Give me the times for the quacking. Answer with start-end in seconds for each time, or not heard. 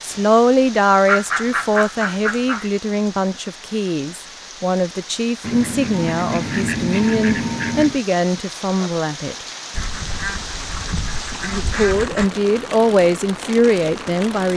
1.1-2.7, 5.4-8.0, 9.7-12.3.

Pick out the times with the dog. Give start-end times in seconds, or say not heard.
not heard.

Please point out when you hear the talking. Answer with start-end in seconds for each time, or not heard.
0.0-9.3, 11.4-14.5.